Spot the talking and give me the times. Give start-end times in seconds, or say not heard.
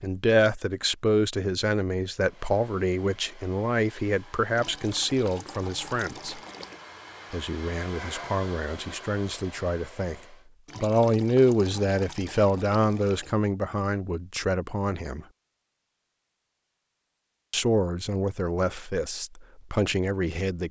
0.0-6.4, 7.3-15.2, 17.5-20.6.